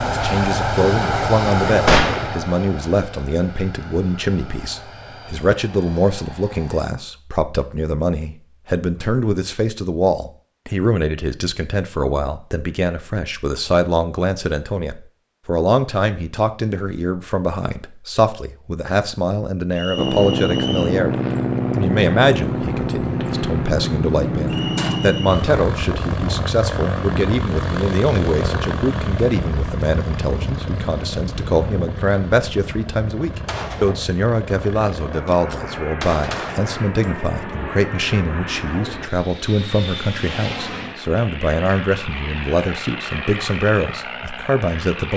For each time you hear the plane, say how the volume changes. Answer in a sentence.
The plane can be heard from 0.0 to 6.9 s, getting quieter; and from 19.9 to 45.1 s, getting quieter.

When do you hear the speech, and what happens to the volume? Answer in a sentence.
You can hear the speech from 0.1 to 45.1 s, at a steady volume.